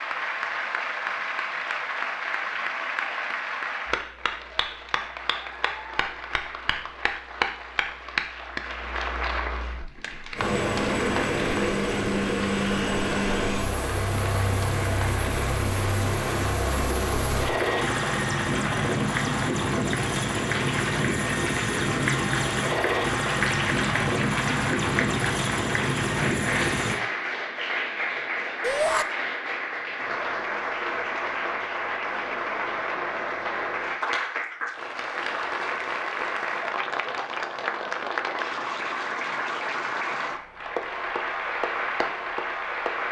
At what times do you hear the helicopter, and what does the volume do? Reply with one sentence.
The helicopter can be heard from 10.3 to 27.0 s, at a steady volume.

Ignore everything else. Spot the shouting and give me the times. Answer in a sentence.
The shouting can be heard from 28.6 to 29.1 s.